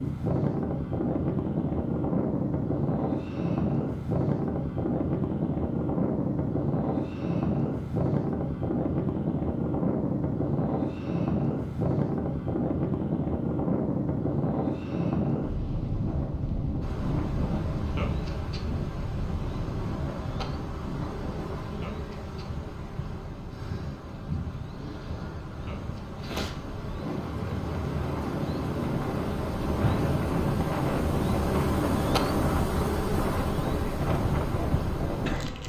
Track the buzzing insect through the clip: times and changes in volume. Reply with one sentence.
The buzzing insect can be heard from 16.8 to 35.6 s, getting louder.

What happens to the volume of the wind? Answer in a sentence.
The volume of the wind goes down, then up.